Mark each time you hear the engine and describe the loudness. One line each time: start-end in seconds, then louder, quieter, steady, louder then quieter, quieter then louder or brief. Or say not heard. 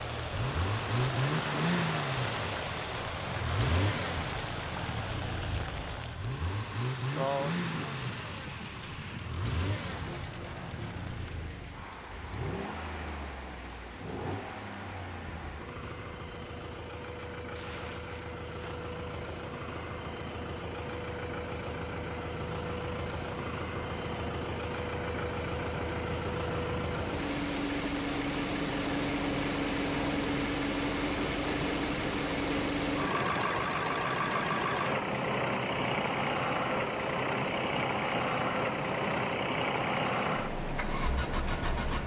0.0-42.0 quieter then louder.